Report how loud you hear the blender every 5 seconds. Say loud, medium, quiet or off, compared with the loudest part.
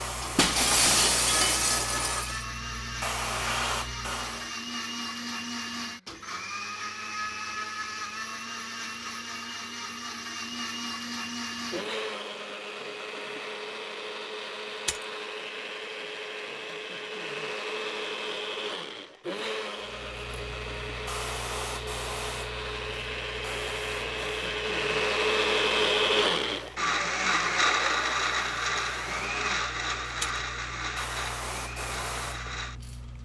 medium, medium, medium, medium, medium, loud, medium.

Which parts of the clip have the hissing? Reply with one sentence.
You can hear the hissing from 0.0 to 4.5 s and from 19.8 to 33.2 s.